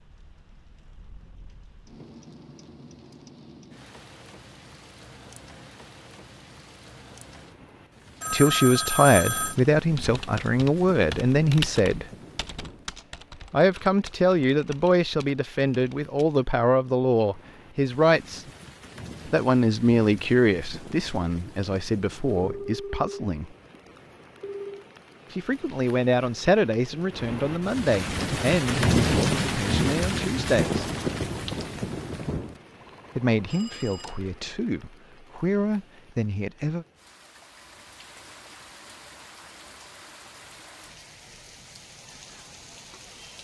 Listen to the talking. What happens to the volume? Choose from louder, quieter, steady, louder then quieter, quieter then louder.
quieter.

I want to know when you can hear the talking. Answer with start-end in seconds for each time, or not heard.
8.3-12.1, 13.5-18.4, 19.2-23.5, 25.3-30.8, 33.1-36.9.